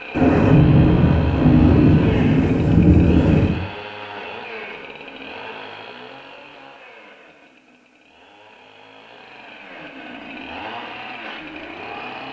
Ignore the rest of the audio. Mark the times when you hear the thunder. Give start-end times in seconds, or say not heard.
0.1-3.6.